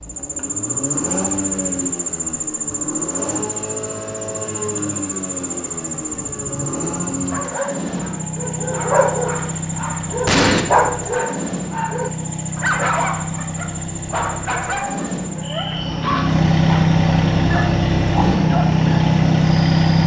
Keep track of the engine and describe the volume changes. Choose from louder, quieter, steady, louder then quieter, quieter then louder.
louder.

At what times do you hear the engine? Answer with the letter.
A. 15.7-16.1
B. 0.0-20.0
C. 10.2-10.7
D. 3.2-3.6
B.